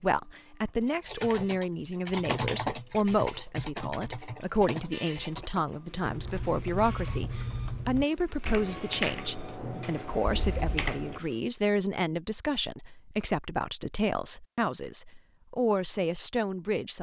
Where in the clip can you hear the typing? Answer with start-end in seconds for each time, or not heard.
1.1-11.2.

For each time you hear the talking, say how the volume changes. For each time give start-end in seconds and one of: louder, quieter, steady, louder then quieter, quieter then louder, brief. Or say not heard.
0.0-16.9 steady.